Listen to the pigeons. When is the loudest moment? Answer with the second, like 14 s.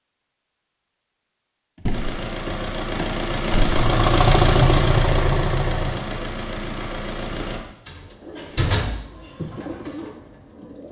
10 s.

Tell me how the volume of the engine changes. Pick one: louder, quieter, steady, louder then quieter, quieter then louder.
louder then quieter.